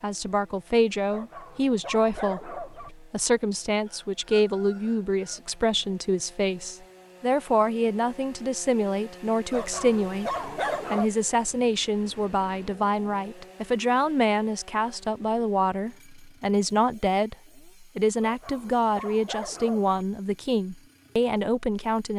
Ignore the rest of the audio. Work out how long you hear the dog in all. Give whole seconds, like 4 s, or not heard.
5 s.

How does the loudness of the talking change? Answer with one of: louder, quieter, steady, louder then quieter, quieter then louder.
steady.